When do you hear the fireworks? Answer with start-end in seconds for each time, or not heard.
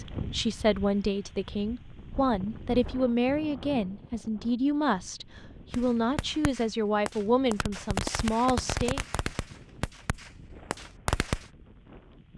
5.7-11.5.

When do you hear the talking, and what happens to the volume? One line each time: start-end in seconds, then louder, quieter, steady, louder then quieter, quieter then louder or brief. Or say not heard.
0.0-9.1 steady.